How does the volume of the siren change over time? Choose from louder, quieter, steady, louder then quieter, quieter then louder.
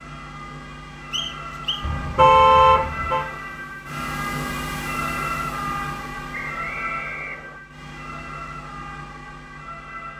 louder then quieter.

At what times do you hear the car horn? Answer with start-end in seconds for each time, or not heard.
1.8-3.2.